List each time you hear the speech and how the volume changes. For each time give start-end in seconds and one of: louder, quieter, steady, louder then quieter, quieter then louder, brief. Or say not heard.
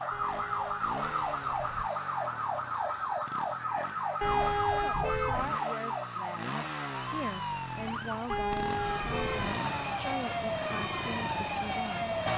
4.8-12.2 steady.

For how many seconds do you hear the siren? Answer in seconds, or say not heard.
12 s.